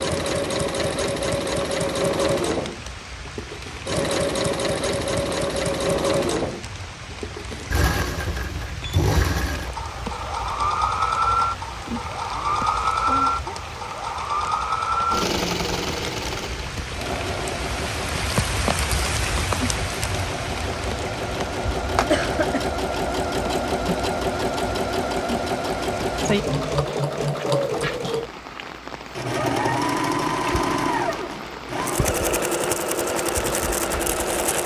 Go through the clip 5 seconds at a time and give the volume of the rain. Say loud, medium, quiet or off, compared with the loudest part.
medium, medium, medium, loud, medium, medium, medium.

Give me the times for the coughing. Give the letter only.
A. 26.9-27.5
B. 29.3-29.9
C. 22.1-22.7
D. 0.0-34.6
C.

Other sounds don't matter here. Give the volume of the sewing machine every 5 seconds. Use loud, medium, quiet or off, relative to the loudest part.
loud, loud, loud, medium, loud, loud, loud.